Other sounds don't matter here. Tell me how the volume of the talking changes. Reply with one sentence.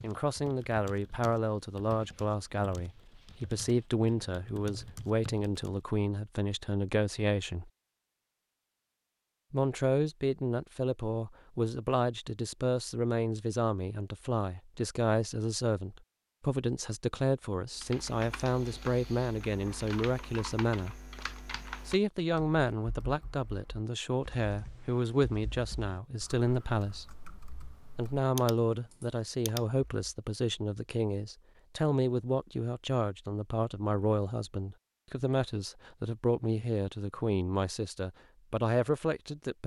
The volume of the talking stays about the same.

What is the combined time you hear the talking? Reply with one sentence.
You can hear the talking for 36 seconds altogether.